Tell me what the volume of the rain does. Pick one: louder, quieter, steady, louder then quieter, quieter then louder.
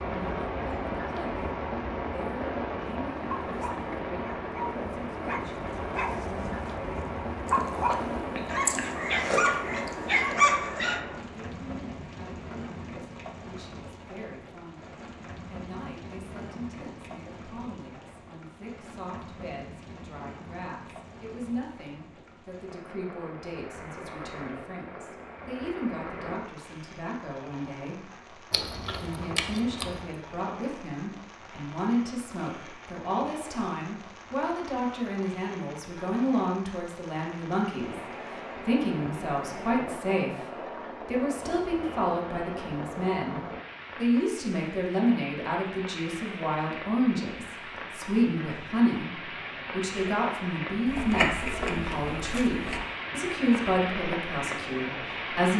quieter then louder.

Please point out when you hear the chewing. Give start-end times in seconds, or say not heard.
7.5-10.3, 28.5-30.1, 50.9-52.9.